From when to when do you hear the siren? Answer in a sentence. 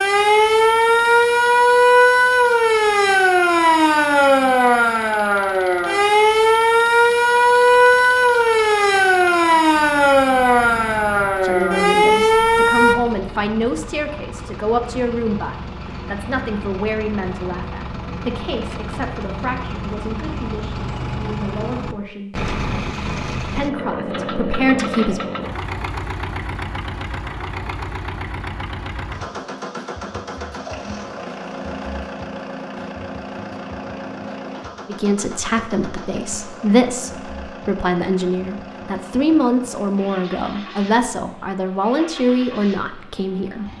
The siren can be heard from 0.0 to 12.9 s.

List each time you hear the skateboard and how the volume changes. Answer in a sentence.
The skateboard can't be heard in this clip.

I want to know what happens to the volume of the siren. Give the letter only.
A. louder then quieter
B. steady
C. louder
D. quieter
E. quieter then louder
B.